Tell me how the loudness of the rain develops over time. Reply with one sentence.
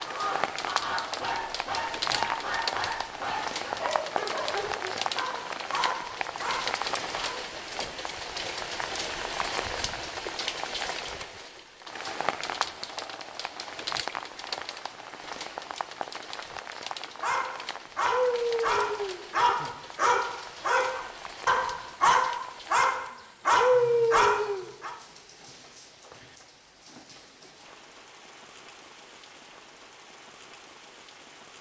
The loudness of the rain goes down.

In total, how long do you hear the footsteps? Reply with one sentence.
You can't hear the footsteps here.